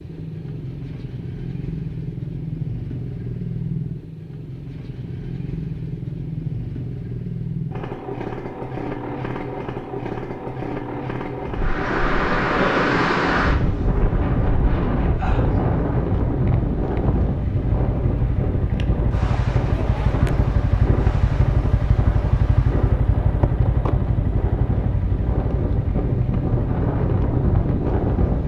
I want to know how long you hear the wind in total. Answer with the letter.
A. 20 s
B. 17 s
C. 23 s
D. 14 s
B.